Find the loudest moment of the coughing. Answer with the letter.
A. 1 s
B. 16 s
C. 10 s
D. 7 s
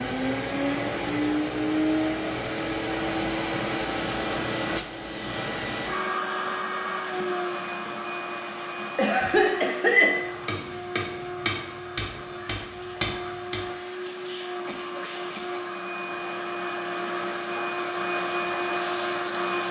C.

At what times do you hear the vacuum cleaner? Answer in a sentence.
The vacuum cleaner can be heard from 0.0 to 19.6 s.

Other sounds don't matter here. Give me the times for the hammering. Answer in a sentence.
You can hear the hammering from 10.4 to 13.6 s.